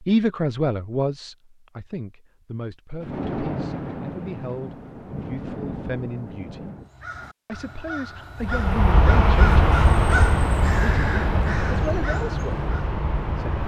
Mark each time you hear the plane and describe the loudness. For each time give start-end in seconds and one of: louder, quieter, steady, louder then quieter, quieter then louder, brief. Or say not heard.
8.4-13.6 quieter.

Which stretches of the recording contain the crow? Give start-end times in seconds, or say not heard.
6.8-12.9.